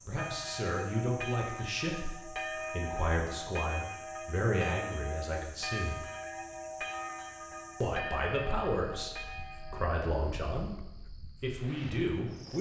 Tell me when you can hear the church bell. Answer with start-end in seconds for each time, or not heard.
0.1-9.9.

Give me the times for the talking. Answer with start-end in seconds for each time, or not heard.
0.1-6.0, 7.8-10.7, 11.4-12.5.